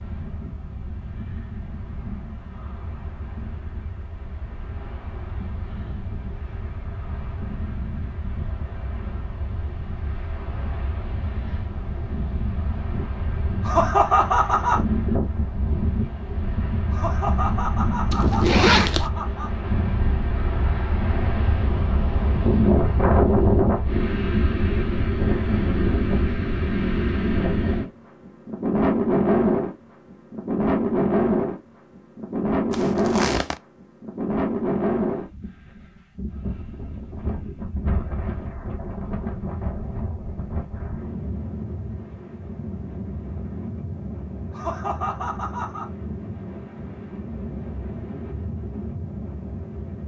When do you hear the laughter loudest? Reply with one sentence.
The volume of the laughter peaks at 14 seconds.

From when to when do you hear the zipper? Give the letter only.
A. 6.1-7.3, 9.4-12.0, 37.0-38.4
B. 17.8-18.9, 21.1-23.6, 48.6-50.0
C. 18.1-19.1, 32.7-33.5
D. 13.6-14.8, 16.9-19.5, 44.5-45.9
C.